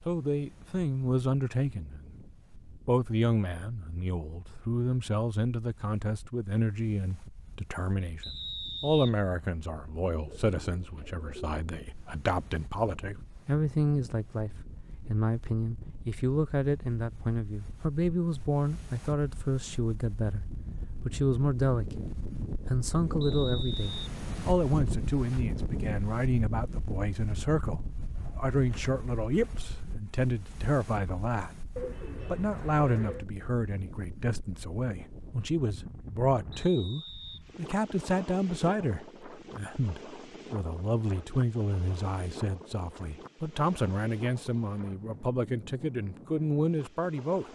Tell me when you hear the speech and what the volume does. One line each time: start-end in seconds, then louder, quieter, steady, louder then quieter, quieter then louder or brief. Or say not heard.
0.1-2.1 brief
2.9-22.1 steady
22.6-47.5 steady.